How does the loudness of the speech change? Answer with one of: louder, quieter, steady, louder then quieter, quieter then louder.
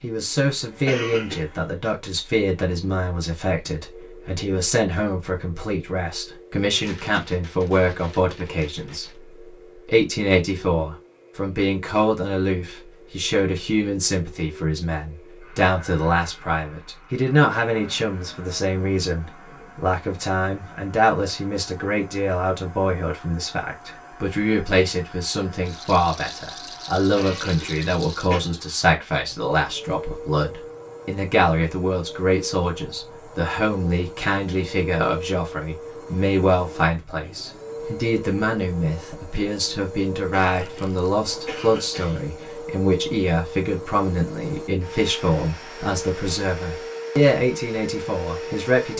steady.